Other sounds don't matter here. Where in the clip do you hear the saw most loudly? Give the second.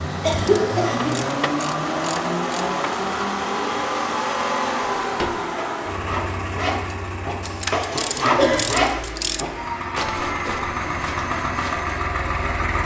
8 s.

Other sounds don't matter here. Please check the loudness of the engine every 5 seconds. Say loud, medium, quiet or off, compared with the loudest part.
loud, medium, loud.